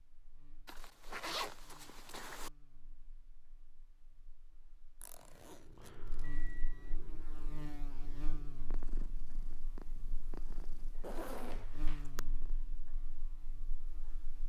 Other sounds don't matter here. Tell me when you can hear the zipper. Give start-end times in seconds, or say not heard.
0.7-2.5, 5.0-6.2, 10.9-12.1.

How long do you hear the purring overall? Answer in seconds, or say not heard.
8 s.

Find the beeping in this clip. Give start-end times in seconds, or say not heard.
6.2-7.0.